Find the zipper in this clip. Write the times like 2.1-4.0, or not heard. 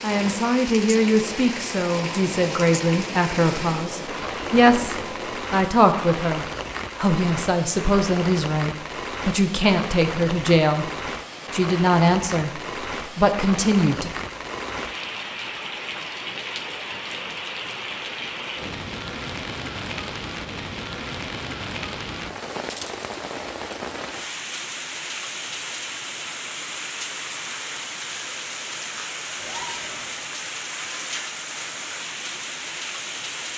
29.4-30.1.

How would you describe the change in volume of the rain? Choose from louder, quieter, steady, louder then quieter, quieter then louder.
steady.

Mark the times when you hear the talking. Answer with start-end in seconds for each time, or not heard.
0.0-10.9, 11.5-14.1.